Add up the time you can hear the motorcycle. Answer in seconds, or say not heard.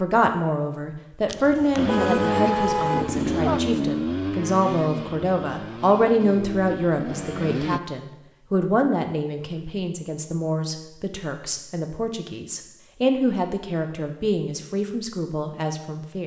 6 s.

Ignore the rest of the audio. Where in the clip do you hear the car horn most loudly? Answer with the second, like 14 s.
3 s.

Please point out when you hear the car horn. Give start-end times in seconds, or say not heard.
1.2-3.6.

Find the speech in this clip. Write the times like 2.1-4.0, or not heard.
0.0-16.2.